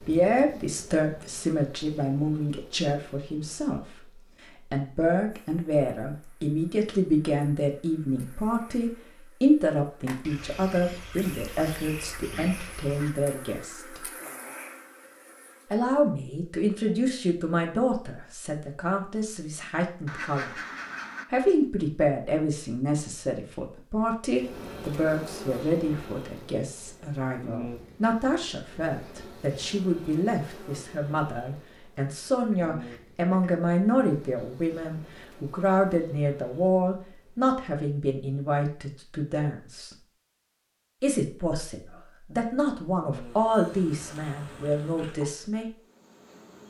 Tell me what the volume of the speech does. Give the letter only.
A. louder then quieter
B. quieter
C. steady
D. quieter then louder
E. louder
C.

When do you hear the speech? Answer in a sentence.
The speech can be heard from 0.0 to 14.1 s, from 15.7 to 20.6 s, from 21.3 to 39.9 s and from 41.0 to 45.6 s.